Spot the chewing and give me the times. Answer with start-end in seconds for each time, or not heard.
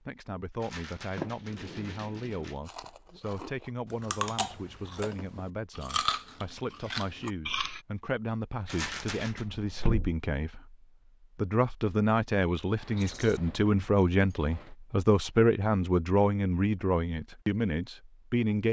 2.6-7.8.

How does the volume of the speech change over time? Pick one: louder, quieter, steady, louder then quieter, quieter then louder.
louder.